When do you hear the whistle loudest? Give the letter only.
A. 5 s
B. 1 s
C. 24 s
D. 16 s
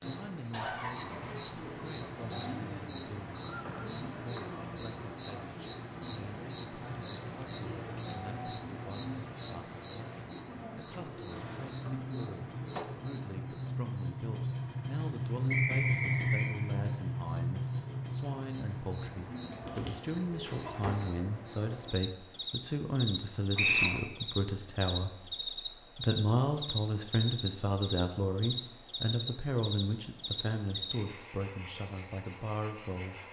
C.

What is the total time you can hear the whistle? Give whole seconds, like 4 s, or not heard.
2 s.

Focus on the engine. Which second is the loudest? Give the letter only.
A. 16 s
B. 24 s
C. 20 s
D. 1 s
A.